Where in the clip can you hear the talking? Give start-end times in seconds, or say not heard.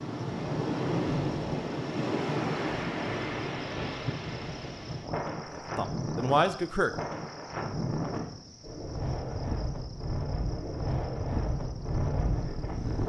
5.5-6.9.